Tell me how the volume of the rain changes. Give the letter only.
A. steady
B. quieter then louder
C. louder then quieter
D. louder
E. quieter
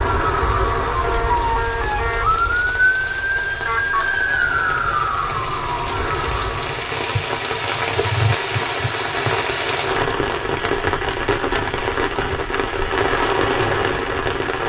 D.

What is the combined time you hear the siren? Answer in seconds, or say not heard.
7 s.